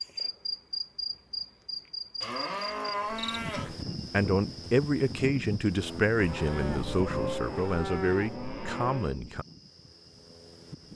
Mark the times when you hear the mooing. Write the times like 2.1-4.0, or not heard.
2.2-3.8, 6.2-9.2.